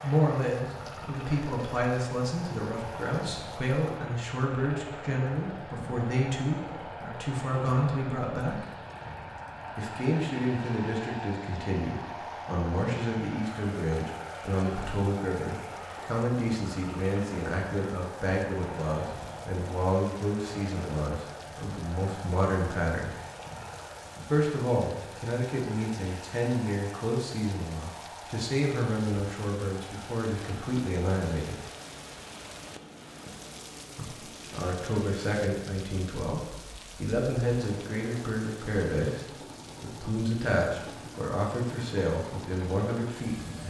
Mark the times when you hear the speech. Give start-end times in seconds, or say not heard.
0.0-8.7, 9.8-23.1, 24.3-31.6, 34.0-43.6.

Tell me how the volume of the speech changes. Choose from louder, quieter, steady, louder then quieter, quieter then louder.
steady.